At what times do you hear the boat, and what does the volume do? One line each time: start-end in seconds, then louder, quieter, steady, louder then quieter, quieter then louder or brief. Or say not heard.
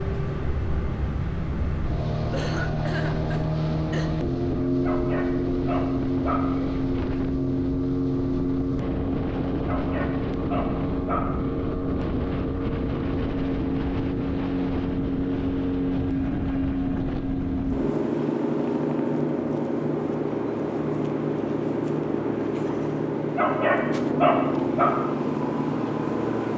0.0-26.5 steady.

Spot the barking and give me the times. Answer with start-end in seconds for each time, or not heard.
4.8-6.7, 9.7-11.7, 23.4-24.9.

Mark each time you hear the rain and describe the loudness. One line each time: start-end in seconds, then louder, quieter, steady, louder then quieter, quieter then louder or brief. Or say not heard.
not heard.